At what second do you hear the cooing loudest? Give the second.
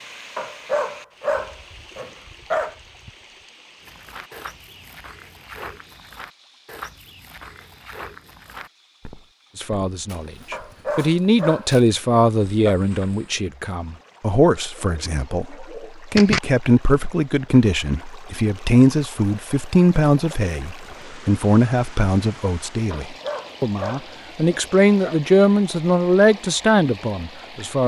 16 s.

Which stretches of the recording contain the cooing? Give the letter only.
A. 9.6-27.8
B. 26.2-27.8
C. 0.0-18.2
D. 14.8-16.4
D.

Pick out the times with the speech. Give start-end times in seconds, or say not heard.
9.6-27.8.